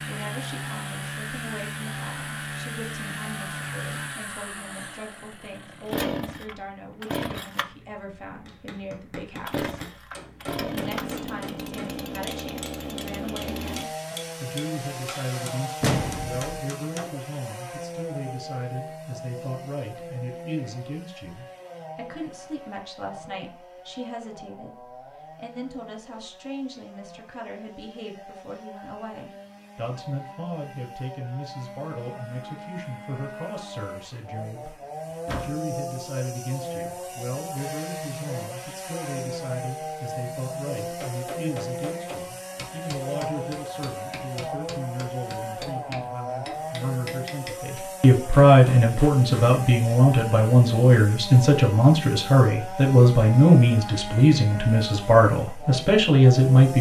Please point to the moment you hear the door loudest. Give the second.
16 s.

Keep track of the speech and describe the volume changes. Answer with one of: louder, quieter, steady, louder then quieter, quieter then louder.
louder.